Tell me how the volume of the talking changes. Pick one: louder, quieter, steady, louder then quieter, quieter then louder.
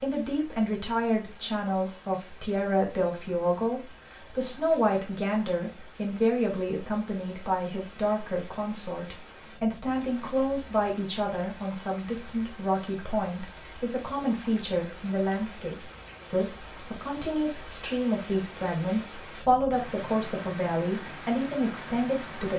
steady.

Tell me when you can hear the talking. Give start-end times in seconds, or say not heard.
0.0-22.5.